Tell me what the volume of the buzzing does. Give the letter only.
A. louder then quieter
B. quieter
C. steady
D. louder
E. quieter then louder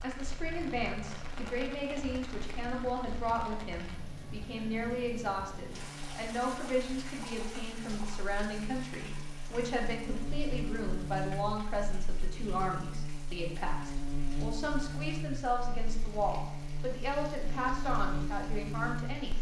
D.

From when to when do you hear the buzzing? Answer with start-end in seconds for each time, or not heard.
0.2-19.3.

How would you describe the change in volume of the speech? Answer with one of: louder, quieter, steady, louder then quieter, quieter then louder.
steady.